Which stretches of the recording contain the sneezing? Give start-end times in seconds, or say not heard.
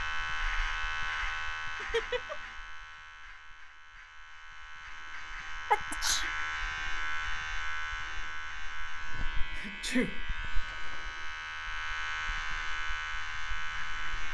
1.8-2.4, 5.7-6.2, 9.6-10.2.